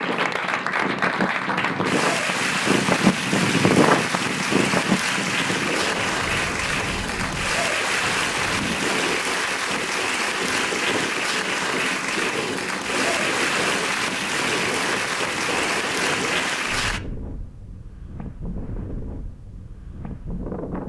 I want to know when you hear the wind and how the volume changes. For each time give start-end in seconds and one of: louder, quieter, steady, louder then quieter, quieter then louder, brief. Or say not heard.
0.0-20.8 quieter.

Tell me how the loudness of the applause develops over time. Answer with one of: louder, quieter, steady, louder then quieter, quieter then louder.
steady.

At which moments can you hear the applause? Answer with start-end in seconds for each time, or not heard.
0.0-17.0.